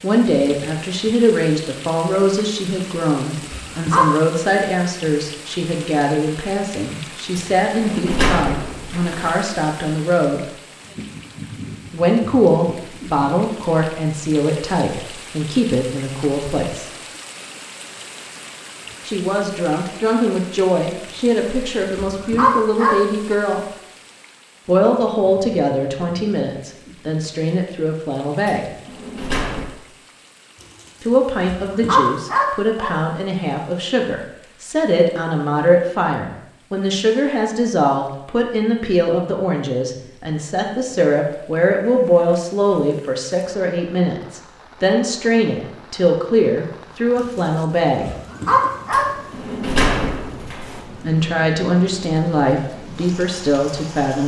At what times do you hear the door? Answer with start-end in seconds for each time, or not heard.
7.3-9.3, 28.4-29.8, 48.9-50.9.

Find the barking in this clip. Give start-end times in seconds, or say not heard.
3.4-4.1, 21.9-22.9, 31.4-32.9, 48.0-49.1.